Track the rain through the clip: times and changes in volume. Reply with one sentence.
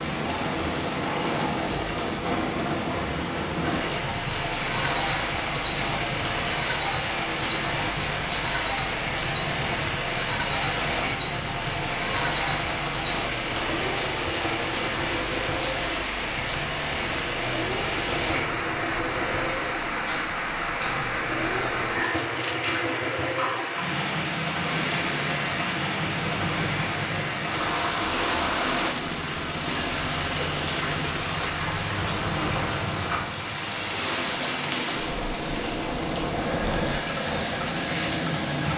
You can hear the rain from 0.0 to 38.7 s, at a steady volume.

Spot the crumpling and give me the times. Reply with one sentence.
You can hear the crumpling from 22.0 to 22.8 s.